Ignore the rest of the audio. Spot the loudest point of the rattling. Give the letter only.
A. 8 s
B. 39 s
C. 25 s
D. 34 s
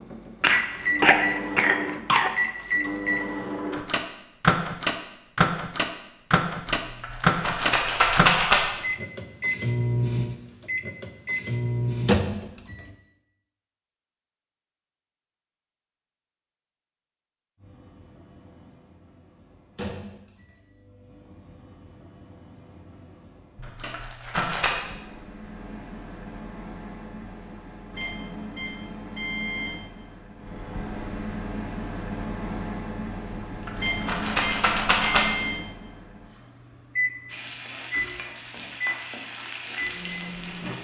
A.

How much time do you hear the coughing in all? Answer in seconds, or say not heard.
2 s.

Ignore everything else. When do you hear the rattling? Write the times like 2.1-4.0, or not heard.
6.8-8.6, 23.6-24.7, 33.3-35.2.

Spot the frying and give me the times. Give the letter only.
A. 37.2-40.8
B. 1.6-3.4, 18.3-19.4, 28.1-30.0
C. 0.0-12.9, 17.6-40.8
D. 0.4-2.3
A.